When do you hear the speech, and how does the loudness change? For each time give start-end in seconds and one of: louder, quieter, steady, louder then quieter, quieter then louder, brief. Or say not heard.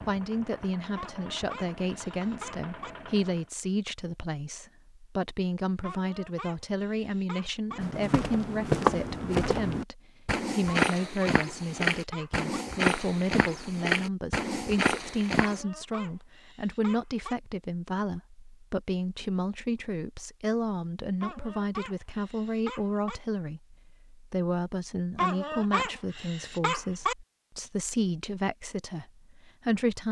0.1-30.0 steady.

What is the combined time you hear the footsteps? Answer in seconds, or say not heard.
8 s.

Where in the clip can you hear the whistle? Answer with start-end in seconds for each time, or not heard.
not heard.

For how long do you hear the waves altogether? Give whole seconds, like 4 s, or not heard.
not heard.